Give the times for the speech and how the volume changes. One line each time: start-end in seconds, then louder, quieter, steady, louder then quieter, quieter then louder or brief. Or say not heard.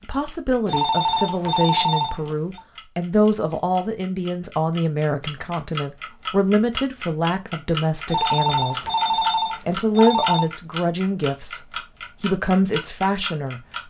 0.1-13.6 steady.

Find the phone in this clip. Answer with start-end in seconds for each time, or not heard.
0.7-2.6, 8.1-10.4.